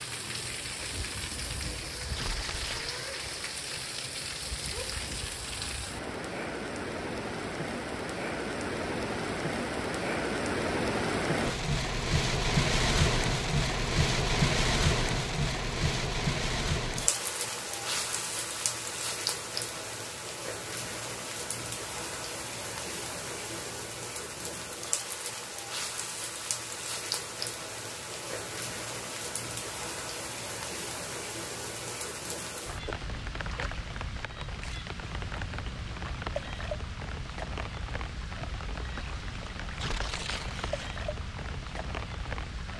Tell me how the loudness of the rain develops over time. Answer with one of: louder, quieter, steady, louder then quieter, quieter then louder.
louder then quieter.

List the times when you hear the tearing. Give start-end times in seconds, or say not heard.
2.1-3.0, 39.8-41.0.